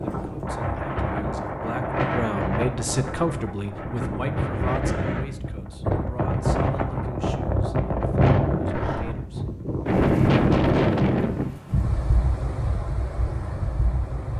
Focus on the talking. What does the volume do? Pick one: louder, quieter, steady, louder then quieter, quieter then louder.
louder then quieter.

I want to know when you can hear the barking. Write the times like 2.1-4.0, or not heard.
8.7-9.2.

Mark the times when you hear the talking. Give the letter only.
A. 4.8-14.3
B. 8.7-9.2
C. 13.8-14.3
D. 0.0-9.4
D.